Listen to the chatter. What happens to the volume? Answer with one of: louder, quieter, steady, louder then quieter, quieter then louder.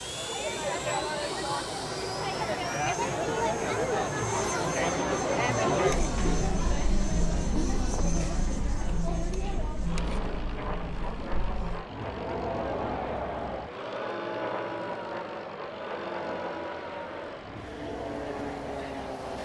quieter.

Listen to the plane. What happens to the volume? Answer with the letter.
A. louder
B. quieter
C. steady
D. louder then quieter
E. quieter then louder
C.